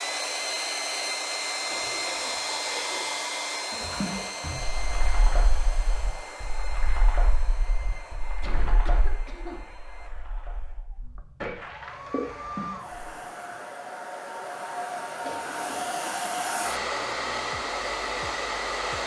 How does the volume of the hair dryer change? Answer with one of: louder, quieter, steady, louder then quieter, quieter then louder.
quieter then louder.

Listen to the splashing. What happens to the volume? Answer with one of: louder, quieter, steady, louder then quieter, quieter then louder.
quieter then louder.